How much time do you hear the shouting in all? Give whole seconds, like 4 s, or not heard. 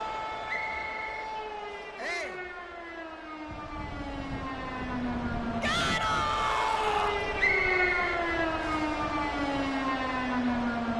2 s.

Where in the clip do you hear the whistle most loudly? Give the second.
8 s.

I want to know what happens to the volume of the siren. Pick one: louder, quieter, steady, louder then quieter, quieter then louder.
louder.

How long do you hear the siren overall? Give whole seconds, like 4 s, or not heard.
11 s.